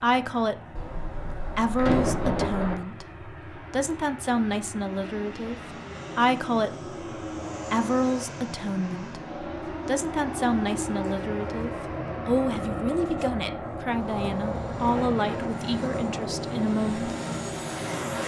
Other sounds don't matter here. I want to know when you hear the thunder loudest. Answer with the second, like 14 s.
2 s.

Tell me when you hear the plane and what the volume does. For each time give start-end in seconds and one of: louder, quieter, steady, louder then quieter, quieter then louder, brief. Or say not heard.
0.0-18.2 louder.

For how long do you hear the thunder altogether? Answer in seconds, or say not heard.
2 s.